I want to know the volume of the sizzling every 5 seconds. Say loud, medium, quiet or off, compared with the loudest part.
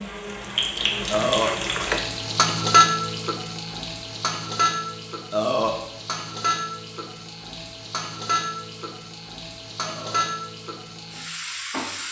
loud, medium, medium.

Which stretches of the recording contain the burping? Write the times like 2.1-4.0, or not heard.
1.1-1.6, 5.3-5.8, 9.8-10.2.